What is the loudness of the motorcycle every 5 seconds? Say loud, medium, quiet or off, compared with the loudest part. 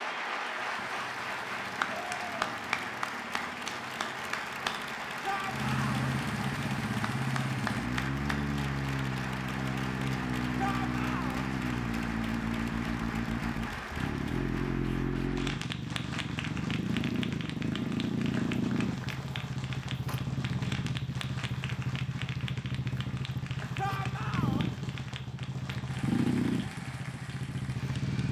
quiet, loud, loud, loud, loud, loud.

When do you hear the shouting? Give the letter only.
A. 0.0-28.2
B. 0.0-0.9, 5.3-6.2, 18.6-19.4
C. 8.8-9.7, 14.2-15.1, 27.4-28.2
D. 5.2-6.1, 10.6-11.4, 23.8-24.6
D.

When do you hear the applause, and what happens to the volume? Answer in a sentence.
The applause can be heard from 0.0 to 28.2 s, getting quieter.